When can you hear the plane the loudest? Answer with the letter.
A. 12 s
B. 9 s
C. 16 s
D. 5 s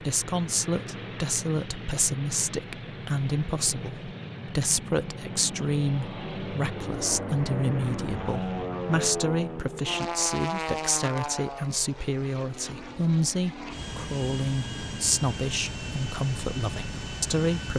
B.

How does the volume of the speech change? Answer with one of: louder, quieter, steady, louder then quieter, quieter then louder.
steady.